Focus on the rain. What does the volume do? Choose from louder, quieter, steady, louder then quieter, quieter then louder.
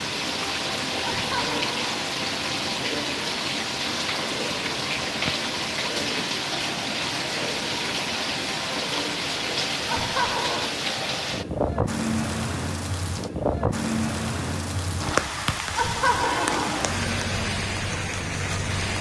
steady.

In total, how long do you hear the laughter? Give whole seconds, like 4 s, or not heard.
3 s.